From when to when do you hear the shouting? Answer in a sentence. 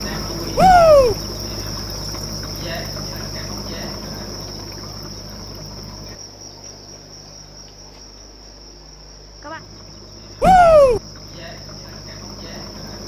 The shouting can be heard from 0.6 to 1.1 s and from 10.4 to 11.0 s.